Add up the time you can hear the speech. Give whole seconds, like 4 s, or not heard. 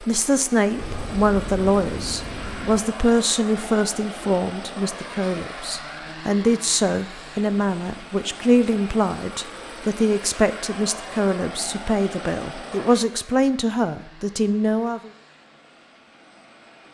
15 s.